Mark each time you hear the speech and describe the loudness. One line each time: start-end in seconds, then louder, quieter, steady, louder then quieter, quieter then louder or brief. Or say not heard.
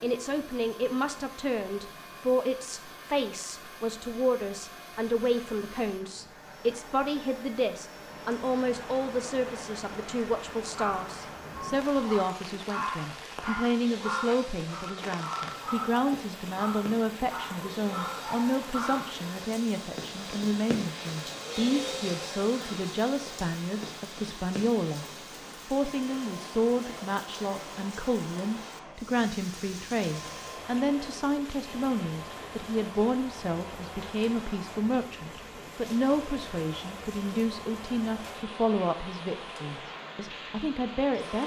0.0-25.1 steady
25.6-41.4 steady.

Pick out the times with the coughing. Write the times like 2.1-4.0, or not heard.
not heard.